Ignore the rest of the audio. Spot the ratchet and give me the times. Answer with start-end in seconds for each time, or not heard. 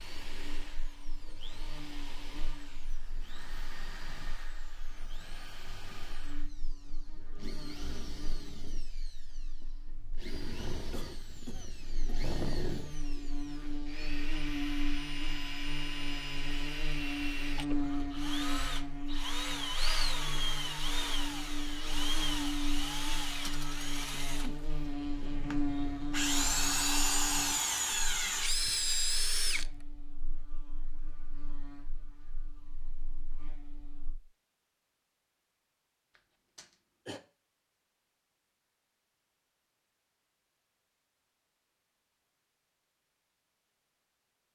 not heard.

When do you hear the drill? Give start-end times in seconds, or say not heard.
0.0-29.8.